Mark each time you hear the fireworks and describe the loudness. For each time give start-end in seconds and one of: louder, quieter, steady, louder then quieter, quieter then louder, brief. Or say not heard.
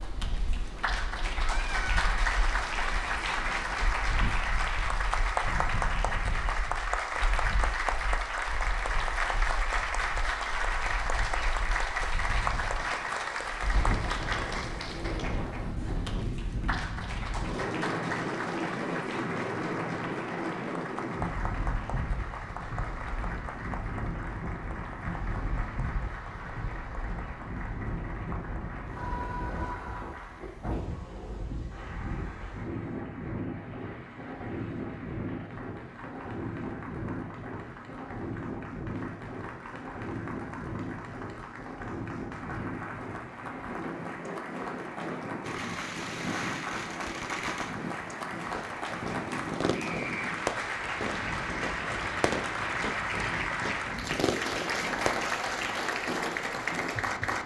45.5-55.4 quieter then louder.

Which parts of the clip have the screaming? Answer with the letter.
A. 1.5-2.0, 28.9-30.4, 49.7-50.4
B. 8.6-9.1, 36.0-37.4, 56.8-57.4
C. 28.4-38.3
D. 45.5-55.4
A.